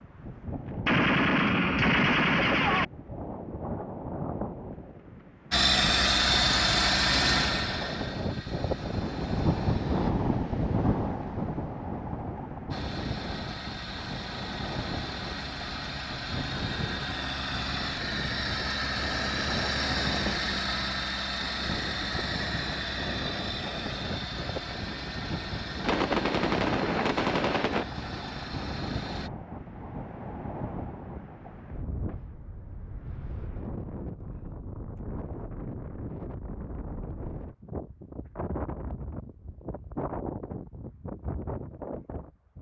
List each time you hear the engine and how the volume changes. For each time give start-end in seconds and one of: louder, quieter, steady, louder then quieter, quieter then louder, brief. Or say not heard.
5.5-10.1 quieter
12.7-29.3 louder then quieter.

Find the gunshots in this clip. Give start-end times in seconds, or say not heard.
0.8-2.9, 25.8-27.9.